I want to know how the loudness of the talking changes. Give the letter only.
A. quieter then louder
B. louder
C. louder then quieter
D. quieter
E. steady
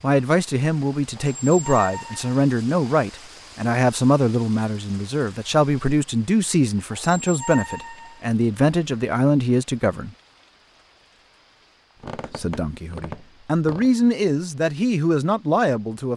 E.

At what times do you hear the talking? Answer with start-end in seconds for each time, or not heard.
0.0-10.1, 12.3-16.1.